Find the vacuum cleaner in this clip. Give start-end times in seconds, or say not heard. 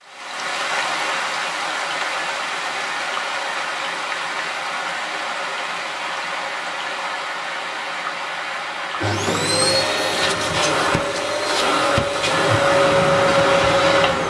8.8-14.2.